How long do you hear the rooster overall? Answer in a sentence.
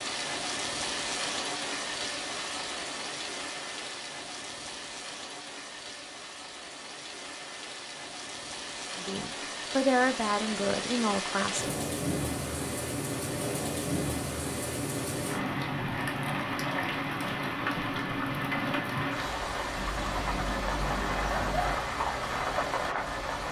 You can hear the rooster for 2 seconds altogether.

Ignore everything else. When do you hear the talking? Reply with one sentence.
The talking can be heard from 8.9 to 11.9 s.